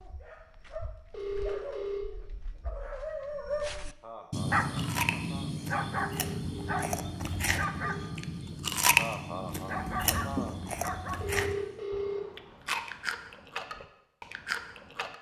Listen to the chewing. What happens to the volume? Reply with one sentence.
The volume of the chewing goes up, then down.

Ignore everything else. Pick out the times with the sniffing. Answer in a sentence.
The sniffing can't be heard in this clip.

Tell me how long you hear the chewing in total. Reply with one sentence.
You can hear the chewing for 10 seconds altogether.